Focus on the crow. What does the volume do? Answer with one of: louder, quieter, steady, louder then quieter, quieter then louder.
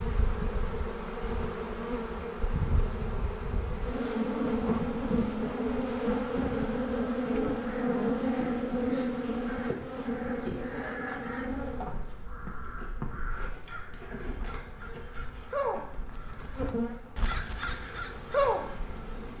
louder.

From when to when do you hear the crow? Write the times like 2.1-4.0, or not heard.
7.5-19.3.